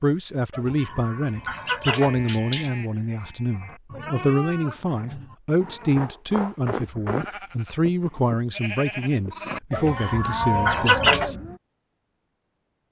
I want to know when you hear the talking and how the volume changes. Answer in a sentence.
You can hear the talking from 0.0 to 11.3 s, at a steady volume.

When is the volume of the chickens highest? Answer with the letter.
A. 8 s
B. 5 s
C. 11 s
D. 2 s
C.